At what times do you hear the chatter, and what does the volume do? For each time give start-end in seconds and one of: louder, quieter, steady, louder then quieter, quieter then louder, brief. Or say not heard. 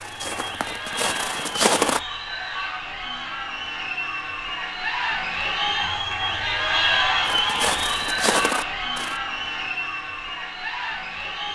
0.0-11.4 louder then quieter.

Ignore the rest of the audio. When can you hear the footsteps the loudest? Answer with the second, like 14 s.
2 s.